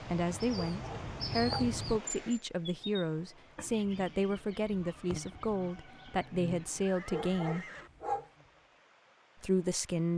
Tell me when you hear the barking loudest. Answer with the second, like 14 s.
8 s.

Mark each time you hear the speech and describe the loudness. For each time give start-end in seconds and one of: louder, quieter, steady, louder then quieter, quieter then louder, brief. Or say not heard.
0.0-7.7 steady
9.4-10.1 brief.